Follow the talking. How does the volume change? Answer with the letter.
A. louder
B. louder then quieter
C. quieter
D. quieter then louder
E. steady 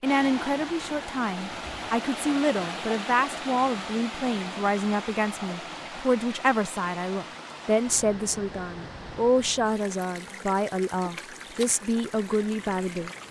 E.